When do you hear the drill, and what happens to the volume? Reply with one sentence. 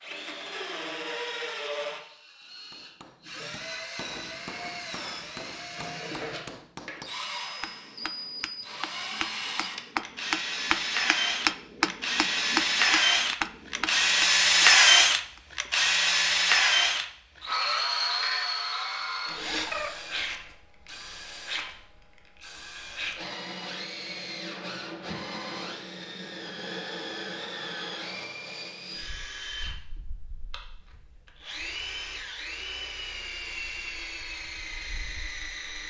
You can hear the drill from 0.0 to 35.8 s, getting louder then quieter.